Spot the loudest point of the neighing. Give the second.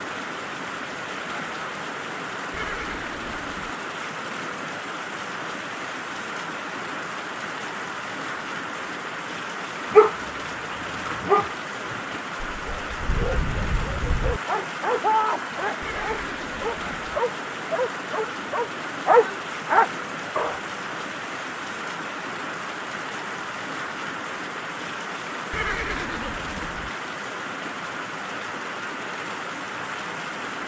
26 s.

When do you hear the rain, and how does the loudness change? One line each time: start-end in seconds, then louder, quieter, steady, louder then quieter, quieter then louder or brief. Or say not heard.
0.0-30.6 steady.